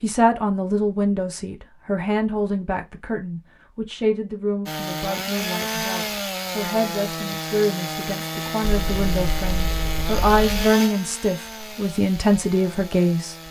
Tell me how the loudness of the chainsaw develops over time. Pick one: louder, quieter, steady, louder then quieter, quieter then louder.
quieter.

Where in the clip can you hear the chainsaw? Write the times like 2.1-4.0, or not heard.
4.7-13.4.